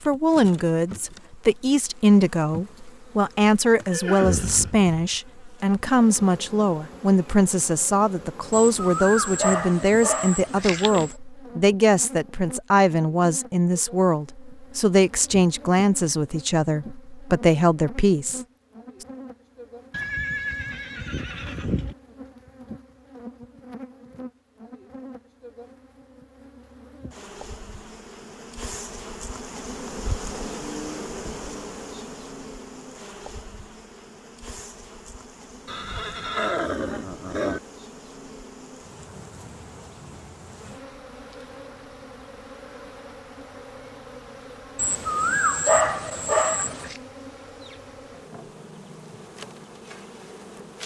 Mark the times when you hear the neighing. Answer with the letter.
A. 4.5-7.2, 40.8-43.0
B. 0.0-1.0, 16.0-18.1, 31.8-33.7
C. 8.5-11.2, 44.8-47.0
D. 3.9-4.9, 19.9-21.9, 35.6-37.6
D.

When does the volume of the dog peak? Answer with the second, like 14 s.
46 s.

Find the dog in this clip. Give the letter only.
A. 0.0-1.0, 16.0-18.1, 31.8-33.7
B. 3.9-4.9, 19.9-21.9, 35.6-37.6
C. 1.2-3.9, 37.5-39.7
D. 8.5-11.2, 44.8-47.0
D.